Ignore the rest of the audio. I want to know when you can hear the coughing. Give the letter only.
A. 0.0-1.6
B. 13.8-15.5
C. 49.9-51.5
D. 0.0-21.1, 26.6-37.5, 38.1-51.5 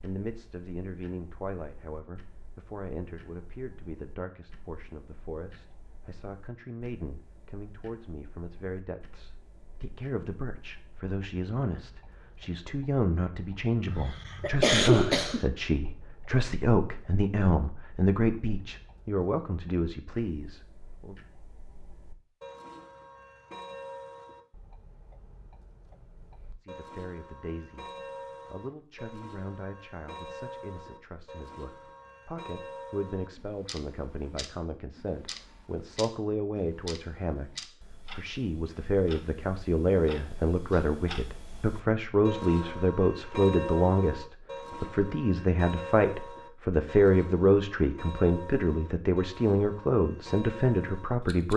B.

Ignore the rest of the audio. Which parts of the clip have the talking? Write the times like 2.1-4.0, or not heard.
0.0-21.1, 26.6-37.5, 38.1-51.5.